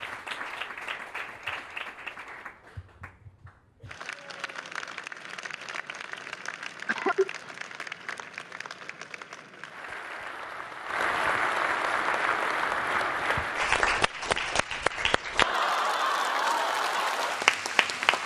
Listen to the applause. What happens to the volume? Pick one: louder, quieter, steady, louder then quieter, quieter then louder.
louder.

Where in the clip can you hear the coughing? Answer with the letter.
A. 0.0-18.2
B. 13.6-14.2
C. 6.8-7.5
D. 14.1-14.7
C.